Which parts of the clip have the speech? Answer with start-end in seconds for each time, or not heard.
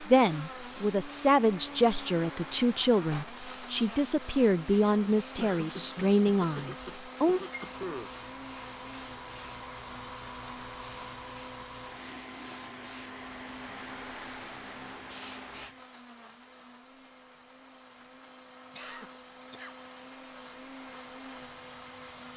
0.0-7.4.